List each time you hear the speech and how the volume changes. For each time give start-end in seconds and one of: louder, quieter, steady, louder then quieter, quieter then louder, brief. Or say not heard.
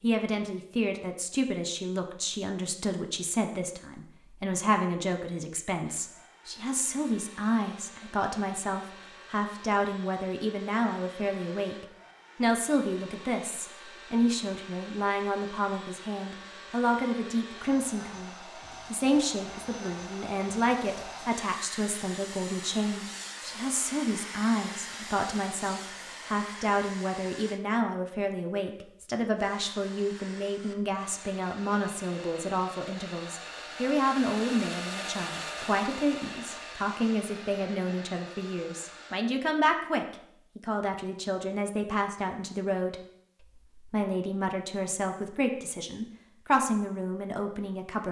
0.0-48.0 steady.